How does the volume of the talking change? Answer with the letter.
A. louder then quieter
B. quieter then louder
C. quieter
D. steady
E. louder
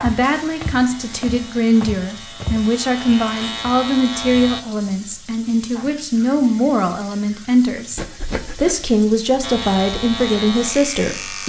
D.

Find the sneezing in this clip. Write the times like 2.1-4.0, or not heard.
8.0-8.9.